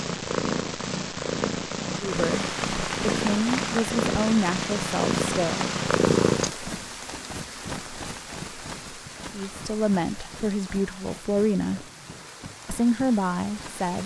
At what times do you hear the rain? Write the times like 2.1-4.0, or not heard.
2.1-14.0.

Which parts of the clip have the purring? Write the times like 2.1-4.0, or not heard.
0.0-6.5.